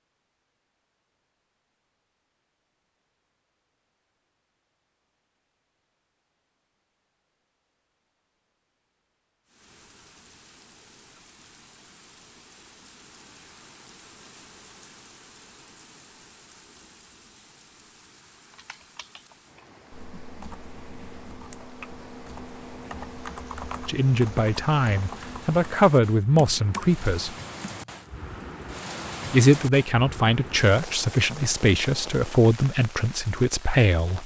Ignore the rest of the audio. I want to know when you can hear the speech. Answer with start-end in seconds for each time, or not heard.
23.9-27.4, 29.3-34.2.